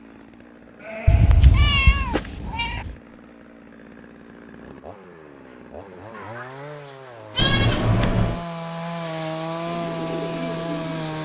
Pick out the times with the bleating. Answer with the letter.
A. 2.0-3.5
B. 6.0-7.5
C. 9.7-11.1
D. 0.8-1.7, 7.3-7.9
D.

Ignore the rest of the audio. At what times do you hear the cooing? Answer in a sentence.
The cooing can be heard from 9.7 to 11.1 s.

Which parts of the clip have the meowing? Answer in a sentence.
You can hear the meowing from 1.1 to 3.0 s and from 7.3 to 8.4 s.